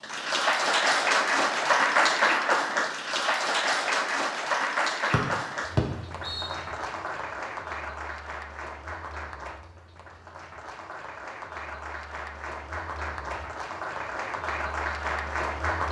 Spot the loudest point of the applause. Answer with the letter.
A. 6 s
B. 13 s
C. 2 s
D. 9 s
C.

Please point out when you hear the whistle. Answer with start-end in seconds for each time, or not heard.
5.1-6.5.